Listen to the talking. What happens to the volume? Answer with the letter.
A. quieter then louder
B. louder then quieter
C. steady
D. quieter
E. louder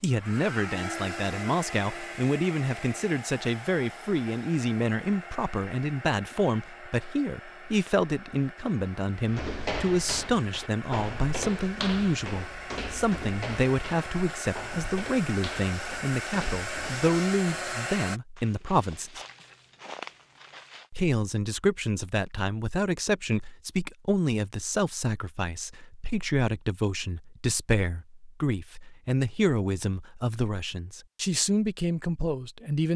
C.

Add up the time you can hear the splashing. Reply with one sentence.
The splashing can't be heard in this clip.